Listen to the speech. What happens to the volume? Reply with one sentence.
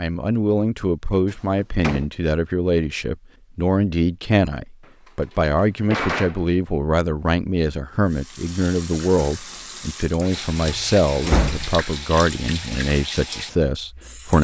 The volume of the speech stays about the same.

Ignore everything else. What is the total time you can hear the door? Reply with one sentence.
You can hear the door for 4 seconds altogether.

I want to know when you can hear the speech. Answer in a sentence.
You can hear the speech from 0.0 to 14.4 s.